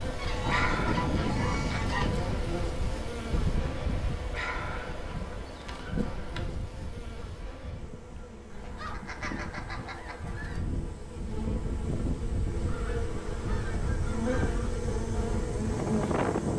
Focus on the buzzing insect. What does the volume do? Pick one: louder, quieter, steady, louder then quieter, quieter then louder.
quieter then louder.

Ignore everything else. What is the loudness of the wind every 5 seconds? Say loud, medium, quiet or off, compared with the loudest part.
loud, medium, medium, loud.